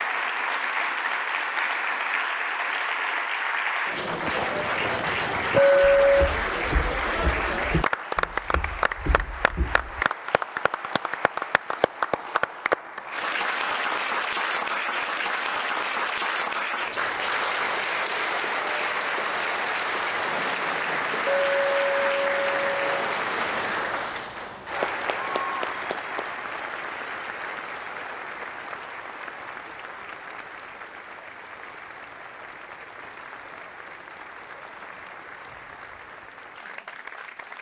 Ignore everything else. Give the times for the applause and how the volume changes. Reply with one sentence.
You can hear the applause from 0.0 to 37.5 s, getting quieter.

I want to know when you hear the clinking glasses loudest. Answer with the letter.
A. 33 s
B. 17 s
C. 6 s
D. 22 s
C.